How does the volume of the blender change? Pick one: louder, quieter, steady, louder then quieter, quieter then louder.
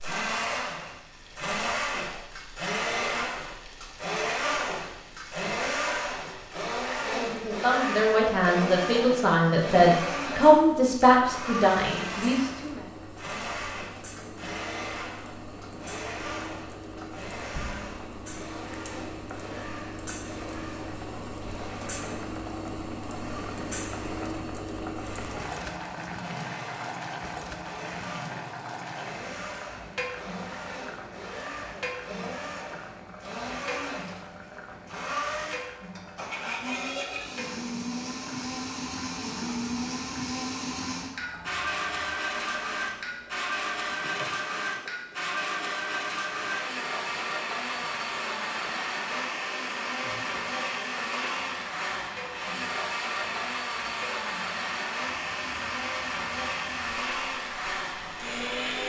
quieter then louder.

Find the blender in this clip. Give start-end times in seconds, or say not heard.
0.0-58.8.